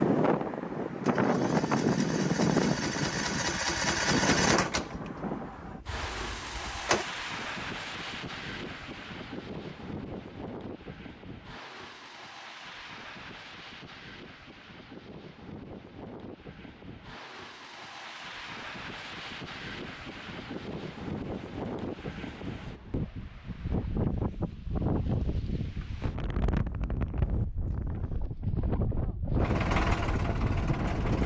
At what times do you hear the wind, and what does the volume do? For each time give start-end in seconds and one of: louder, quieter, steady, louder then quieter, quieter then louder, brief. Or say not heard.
0.0-31.2 quieter then louder.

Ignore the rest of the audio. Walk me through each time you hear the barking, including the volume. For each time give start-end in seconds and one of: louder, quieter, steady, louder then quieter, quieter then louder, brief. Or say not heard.
not heard.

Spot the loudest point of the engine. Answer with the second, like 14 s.
4 s.